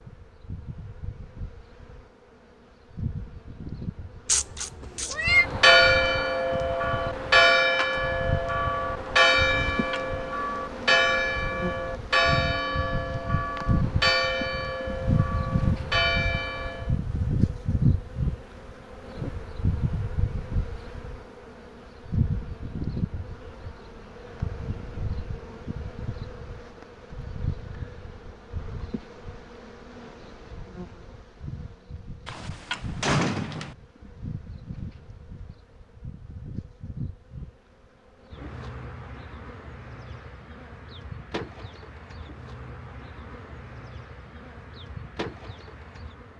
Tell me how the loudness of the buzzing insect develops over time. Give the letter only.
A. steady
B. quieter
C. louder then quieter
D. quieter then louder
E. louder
C.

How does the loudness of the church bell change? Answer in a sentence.
The loudness of the church bell goes down.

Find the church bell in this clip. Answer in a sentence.
You can hear the church bell from 5.2 to 16.9 s.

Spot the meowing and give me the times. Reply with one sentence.
The meowing can be heard from 4.2 to 5.5 s.